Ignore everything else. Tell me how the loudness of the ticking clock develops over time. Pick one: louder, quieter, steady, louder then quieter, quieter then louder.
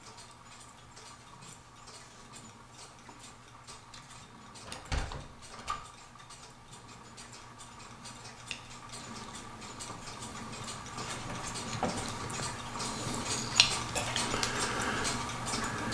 louder.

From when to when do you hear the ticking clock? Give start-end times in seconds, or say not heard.
0.0-15.8.